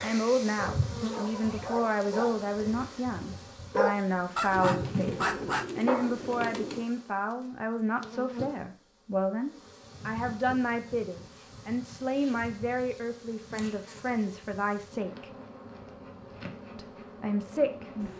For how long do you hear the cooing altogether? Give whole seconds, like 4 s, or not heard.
2 s.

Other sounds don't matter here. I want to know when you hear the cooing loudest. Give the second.
5 s.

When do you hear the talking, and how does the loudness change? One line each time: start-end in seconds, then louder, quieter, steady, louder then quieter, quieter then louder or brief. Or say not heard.
0.0-15.3 steady
16.8-18.1 brief.